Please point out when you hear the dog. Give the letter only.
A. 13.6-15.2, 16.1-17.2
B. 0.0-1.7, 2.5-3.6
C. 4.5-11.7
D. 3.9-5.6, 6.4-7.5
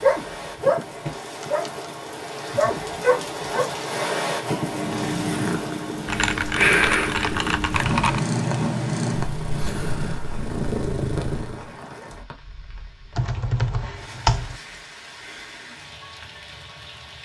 B.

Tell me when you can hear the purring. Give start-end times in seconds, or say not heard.
4.5-11.7.